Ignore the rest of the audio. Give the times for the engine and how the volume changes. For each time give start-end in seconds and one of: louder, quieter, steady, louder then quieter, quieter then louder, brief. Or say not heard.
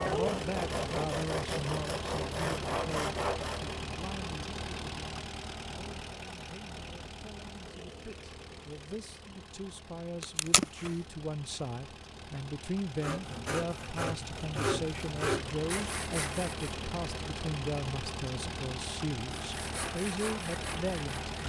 0.0-21.4 quieter then louder.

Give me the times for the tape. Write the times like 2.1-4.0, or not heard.
10.2-10.9.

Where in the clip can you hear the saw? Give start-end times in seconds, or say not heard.
0.0-3.8, 12.9-16.7, 19.4-21.4.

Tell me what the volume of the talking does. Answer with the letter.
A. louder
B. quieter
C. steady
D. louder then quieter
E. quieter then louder
E.